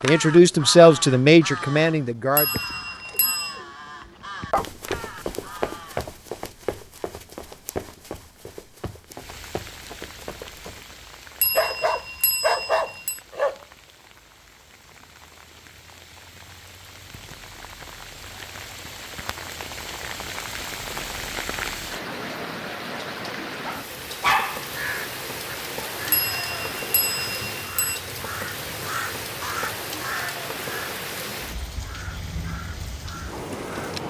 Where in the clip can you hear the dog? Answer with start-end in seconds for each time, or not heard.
2.5-4.7, 11.6-13.6, 23.6-24.7.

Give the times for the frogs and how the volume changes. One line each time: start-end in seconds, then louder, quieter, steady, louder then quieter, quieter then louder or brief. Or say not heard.
not heard.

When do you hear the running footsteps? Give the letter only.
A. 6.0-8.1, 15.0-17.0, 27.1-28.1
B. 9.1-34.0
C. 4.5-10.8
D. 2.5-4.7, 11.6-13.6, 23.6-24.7
C.